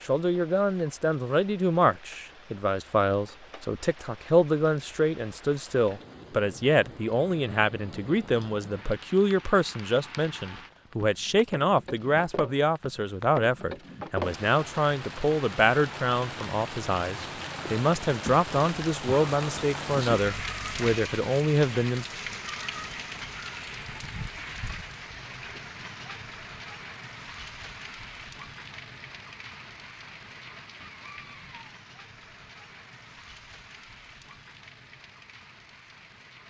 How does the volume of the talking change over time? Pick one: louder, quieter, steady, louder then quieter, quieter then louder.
steady.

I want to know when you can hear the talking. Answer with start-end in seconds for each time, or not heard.
0.0-22.1.